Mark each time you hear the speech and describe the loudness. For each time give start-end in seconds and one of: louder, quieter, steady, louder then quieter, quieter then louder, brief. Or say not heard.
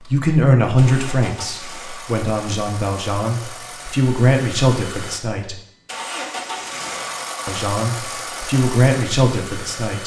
0.0-5.5 quieter then louder
7.5-10.0 brief.